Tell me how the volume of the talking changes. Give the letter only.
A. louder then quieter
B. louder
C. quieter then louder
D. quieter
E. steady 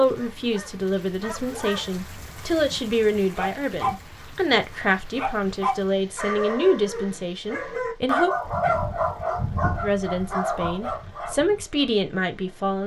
E.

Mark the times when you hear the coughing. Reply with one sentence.
You can't hear the coughing here.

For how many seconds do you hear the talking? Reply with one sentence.
The talking can be heard for 11 seconds in total.